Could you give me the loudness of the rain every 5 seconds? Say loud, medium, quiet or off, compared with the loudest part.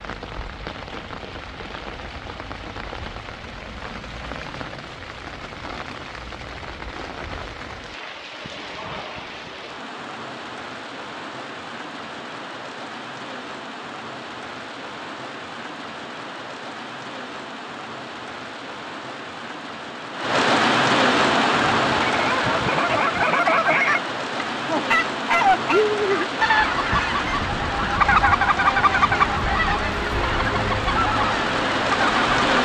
quiet, quiet, quiet, quiet, loud, medium, loud.